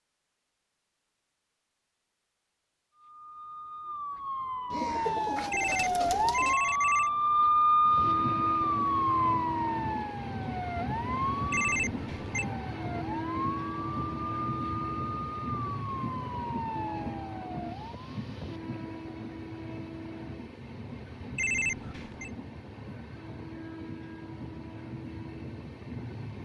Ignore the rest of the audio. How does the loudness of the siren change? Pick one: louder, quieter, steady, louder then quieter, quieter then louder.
louder then quieter.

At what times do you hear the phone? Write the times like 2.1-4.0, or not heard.
5.5-7.1, 11.5-12.4, 21.4-22.3.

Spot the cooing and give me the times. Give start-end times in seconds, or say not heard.
4.7-6.5.